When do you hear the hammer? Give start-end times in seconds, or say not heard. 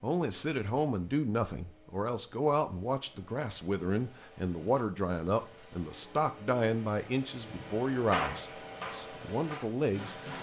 7.5-10.3.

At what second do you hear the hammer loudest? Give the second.
8 s.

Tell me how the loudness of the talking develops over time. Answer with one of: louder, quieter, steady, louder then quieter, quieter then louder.
steady.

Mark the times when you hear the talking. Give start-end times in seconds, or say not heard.
0.0-10.3.